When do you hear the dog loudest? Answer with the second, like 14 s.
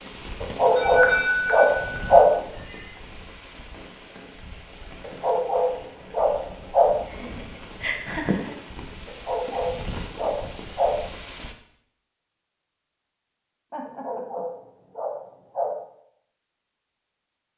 2 s.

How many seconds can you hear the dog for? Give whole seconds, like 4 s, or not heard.
8 s.